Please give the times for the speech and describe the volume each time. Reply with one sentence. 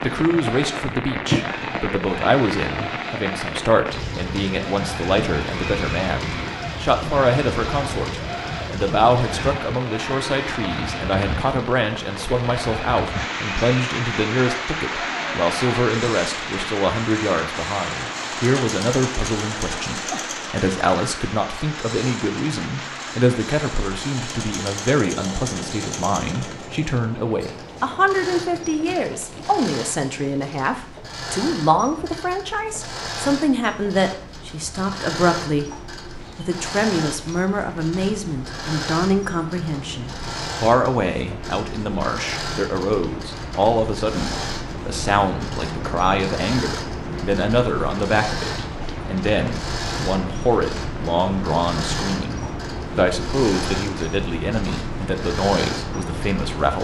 You can hear the speech from 0.0 to 56.8 s, at a steady volume.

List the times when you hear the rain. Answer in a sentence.
The rain can be heard from 0.0 to 56.8 s.